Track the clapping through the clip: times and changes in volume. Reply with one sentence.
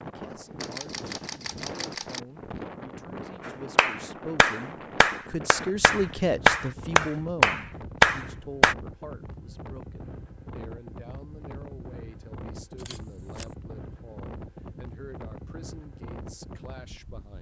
The clapping can be heard from 3.5 to 8.8 s, getting louder.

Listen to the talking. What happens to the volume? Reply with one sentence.
The volume of the talking goes up, then down.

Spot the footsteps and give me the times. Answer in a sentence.
You can't hear the footsteps here.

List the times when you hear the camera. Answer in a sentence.
The camera can be heard from 0.6 to 2.2 s and from 12.8 to 13.6 s.